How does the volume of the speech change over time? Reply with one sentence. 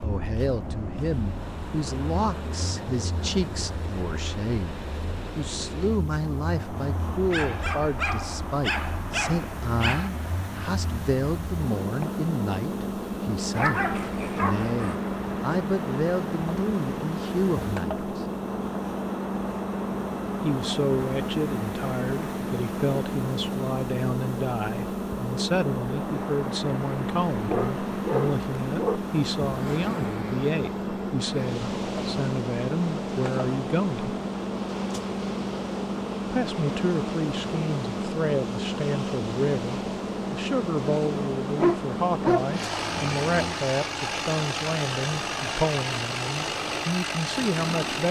The loudness of the speech stays about the same.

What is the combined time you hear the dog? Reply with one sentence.
The dog can be heard for 8 seconds in total.